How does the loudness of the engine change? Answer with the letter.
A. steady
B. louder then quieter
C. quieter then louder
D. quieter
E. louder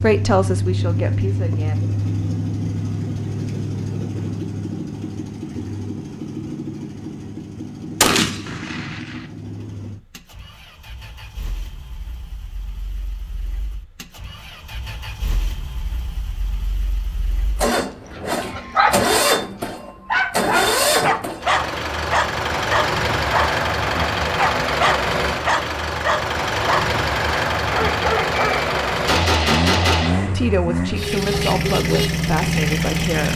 C.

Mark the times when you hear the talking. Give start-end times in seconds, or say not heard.
0.0-1.9, 30.1-33.3.